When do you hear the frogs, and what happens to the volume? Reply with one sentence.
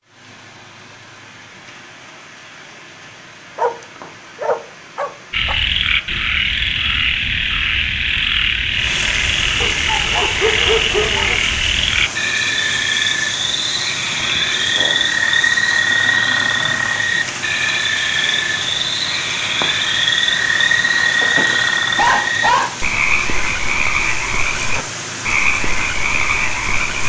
The frogs can be heard from 5.3 to 27.0 s, at a steady volume.